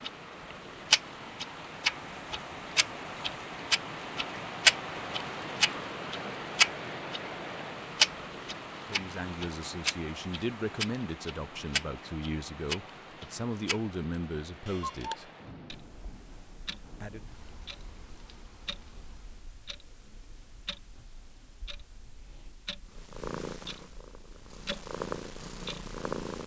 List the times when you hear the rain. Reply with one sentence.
The rain can be heard from 0.0 to 19.5 s.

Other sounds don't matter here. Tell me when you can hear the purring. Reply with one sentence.
You can hear the purring from 22.9 to 26.4 s.